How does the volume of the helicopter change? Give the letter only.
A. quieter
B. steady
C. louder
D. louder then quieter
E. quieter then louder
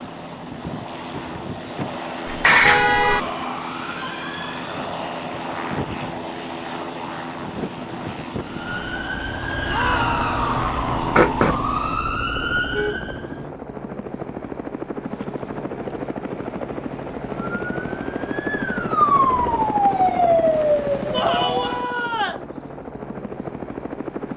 B.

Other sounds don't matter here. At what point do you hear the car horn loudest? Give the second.
3 s.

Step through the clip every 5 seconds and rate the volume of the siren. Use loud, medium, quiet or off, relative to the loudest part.
off, medium, loud, loud, loud.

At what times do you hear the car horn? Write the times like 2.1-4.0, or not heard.
2.2-3.2, 12.4-13.6.